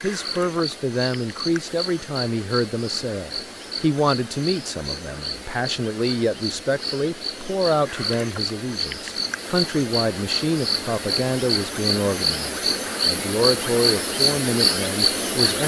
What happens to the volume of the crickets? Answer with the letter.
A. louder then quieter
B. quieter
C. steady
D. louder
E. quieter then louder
D.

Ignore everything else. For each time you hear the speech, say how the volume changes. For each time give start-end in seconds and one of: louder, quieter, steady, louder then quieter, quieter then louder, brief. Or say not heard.
0.0-15.6 steady.